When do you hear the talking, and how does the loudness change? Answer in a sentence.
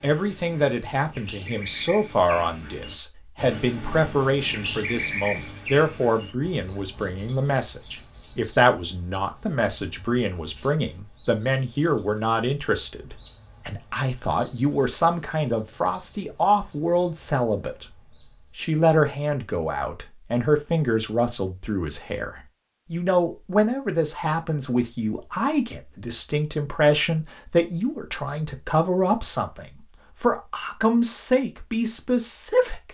You can hear the talking from 0.0 to 17.9 s, at a steady volume; and from 18.6 to 32.8 s, at a steady volume.